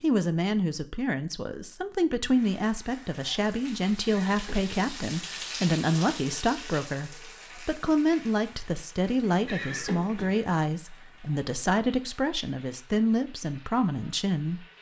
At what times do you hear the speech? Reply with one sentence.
The speech can be heard from 0.0 to 14.7 s.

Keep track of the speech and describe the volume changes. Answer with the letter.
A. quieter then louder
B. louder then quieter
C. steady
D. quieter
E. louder
C.